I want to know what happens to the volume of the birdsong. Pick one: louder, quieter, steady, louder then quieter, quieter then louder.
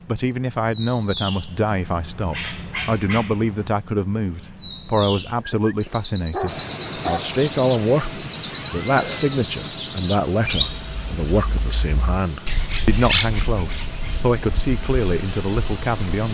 louder.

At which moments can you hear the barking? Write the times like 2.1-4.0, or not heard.
5.3-7.3.